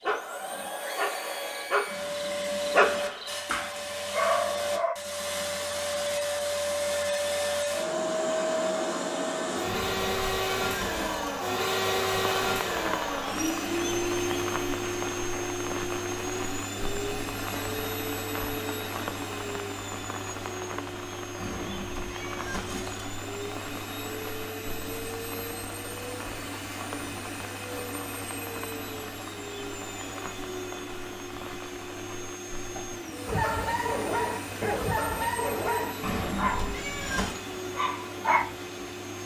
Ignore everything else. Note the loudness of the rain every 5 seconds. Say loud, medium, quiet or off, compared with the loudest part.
off, off, loud, loud, medium, medium, medium, medium.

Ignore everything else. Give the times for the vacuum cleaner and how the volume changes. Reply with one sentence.
You can hear the vacuum cleaner from 0.0 to 39.2 s, getting quieter.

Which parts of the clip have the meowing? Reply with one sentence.
You can hear the meowing from 9.7 to 11.3 s, from 21.4 to 23.1 s and from 36.0 to 37.4 s.